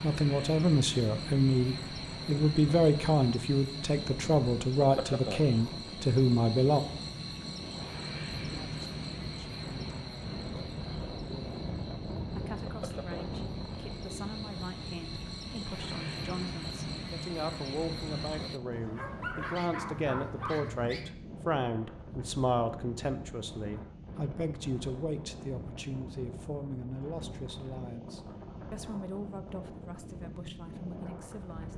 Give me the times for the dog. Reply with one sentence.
The dog can be heard from 18.7 to 21.1 s.